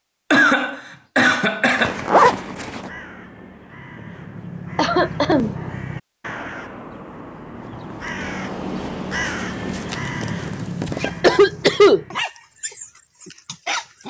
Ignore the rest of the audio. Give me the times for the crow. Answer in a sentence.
You can hear the crow from 1.8 to 12.2 s.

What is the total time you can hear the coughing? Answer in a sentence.
The coughing can be heard for 3 seconds in total.